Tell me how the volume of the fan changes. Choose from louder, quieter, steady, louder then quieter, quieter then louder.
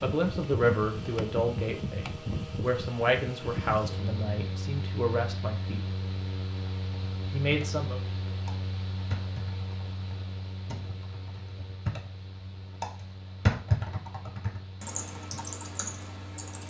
quieter.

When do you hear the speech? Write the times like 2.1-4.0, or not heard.
0.0-5.8, 7.3-8.0.